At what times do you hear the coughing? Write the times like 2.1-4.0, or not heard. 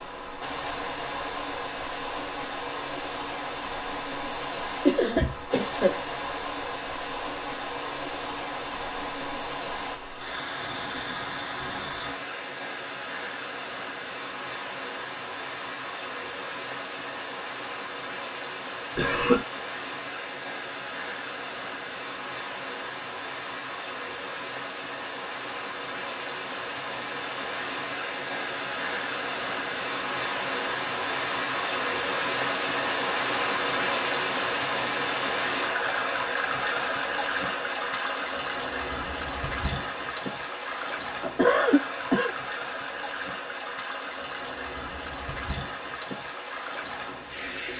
4.8-6.0, 18.9-19.4, 41.2-42.4.